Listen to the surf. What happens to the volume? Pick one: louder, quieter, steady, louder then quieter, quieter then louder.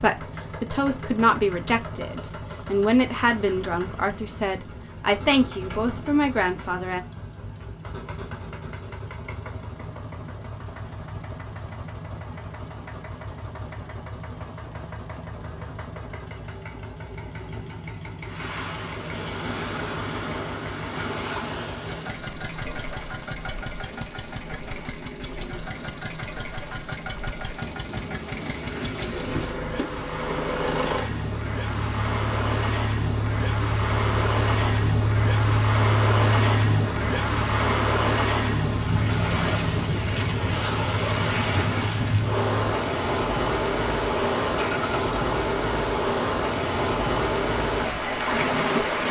louder.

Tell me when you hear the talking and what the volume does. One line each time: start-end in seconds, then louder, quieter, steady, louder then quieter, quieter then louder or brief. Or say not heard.
0.0-7.0 steady.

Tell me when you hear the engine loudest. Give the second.
36 s.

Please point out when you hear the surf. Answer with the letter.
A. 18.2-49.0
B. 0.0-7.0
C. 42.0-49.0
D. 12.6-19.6
A.